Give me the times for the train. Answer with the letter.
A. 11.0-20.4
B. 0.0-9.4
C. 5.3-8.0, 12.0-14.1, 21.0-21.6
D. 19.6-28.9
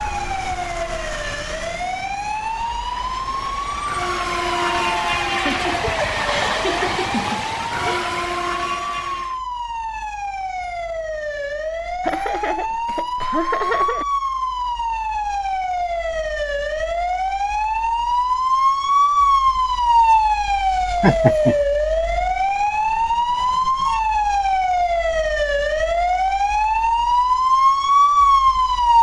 B.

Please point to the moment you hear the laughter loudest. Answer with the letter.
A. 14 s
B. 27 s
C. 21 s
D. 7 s
C.